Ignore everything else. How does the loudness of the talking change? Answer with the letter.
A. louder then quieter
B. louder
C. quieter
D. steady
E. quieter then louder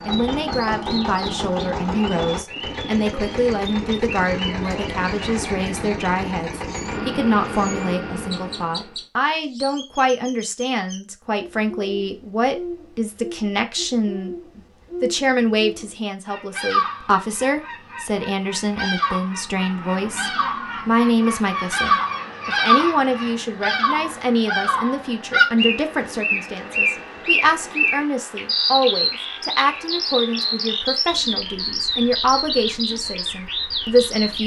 D.